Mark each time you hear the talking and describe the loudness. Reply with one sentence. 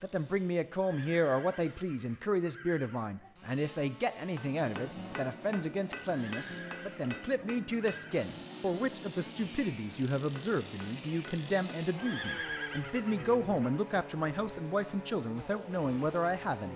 You can hear the talking from 0.0 to 16.7 s, at a steady volume.